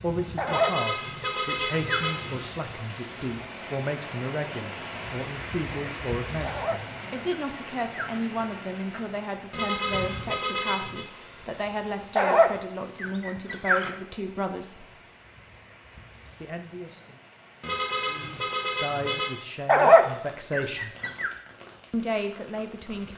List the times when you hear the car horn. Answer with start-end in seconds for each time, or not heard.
0.5-2.5, 9.5-11.1, 17.6-19.4.